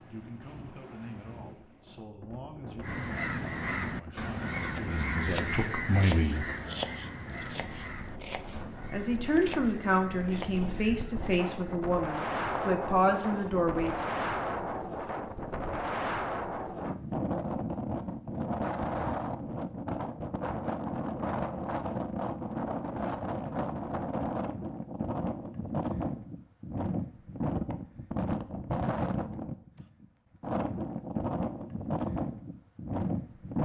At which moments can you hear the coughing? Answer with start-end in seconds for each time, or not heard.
not heard.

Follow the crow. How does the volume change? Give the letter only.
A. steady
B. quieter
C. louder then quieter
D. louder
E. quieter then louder
B.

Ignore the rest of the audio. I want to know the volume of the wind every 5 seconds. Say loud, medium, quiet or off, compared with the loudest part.
quiet, quiet, loud, loud, loud, loud, loud.